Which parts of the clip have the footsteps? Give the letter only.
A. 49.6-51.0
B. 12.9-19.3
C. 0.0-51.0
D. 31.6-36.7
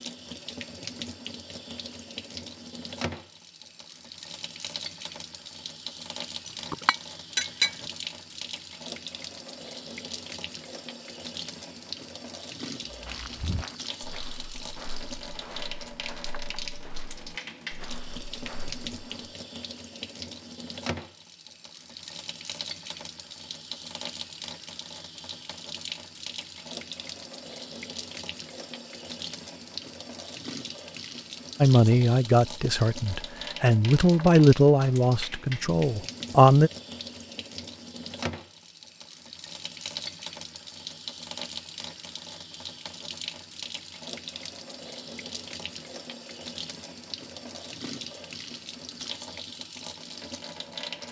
B.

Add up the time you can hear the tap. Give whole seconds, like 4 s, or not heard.
51 s.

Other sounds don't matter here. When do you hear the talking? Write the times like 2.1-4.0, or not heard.
31.6-36.7.